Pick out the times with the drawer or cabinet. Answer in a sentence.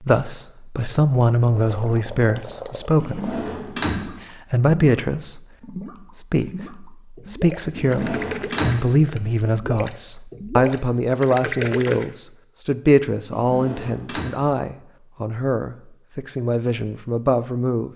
The drawer or cabinet can be heard from 3.0 to 4.1 s, from 7.8 to 9.3 s and from 13.3 to 14.3 s.